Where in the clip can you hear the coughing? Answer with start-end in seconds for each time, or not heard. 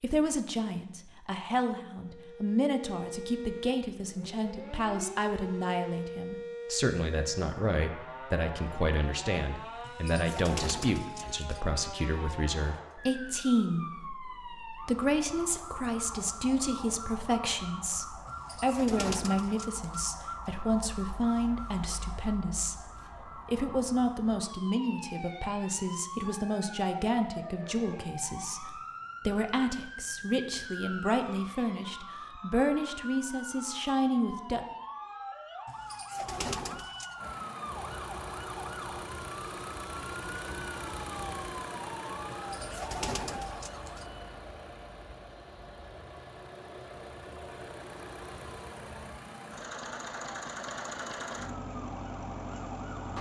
not heard.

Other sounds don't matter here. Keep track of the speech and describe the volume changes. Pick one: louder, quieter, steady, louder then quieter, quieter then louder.
steady.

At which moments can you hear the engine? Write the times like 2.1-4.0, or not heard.
37.1-53.1.